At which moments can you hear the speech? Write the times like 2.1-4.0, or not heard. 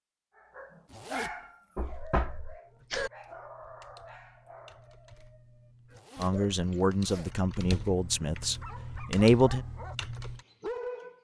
6.2-9.6.